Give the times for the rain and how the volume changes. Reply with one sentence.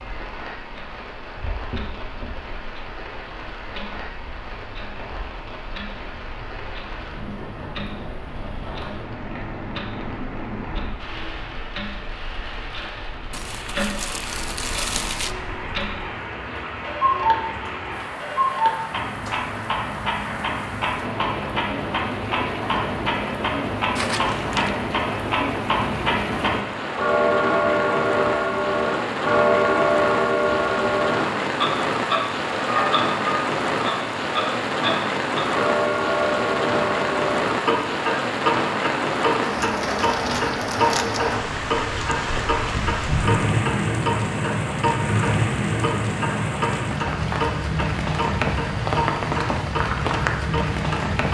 You can hear the rain from 0.0 to 51.3 s, getting louder.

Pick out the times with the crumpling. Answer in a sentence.
The crumpling can be heard from 13.3 to 15.3 s, from 23.9 to 24.8 s and from 39.9 to 41.2 s.